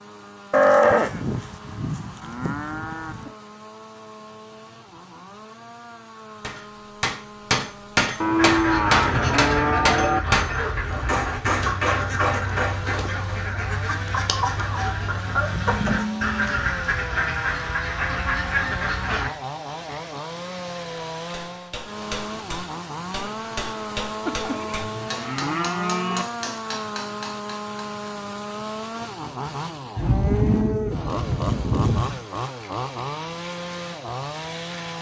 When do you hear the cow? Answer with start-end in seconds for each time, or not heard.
0.5-3.3, 8.2-10.2, 15.4-16.6, 24.2-26.2, 29.9-32.2.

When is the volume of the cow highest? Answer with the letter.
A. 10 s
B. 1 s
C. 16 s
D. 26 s
B.